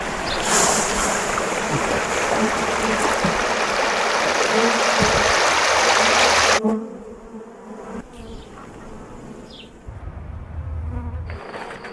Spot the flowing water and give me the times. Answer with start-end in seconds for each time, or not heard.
0.0-6.6.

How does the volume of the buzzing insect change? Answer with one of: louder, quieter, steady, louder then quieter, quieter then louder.
quieter.